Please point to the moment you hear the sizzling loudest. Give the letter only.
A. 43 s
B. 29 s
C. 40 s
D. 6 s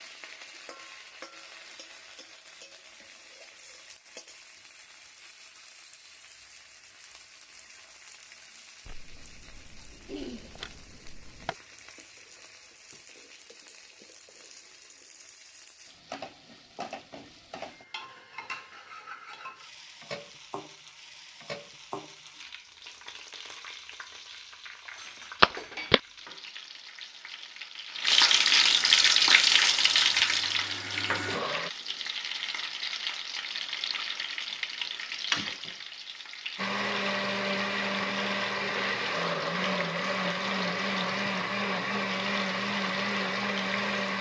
B.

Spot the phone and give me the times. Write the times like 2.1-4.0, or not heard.
8.8-11.6, 25.4-26.0.